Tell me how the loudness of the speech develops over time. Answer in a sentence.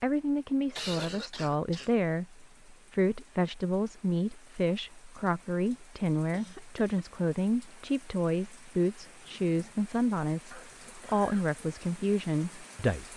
The volume of the speech stays about the same.